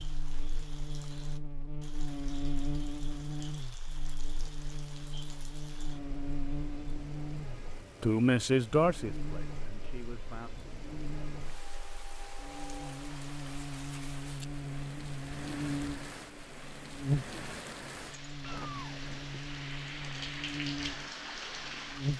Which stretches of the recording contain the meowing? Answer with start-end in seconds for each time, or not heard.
18.4-19.4.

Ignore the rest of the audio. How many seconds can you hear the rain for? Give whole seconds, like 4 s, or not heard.
22 s.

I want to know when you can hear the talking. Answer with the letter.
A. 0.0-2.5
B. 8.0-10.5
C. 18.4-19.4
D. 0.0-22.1
B.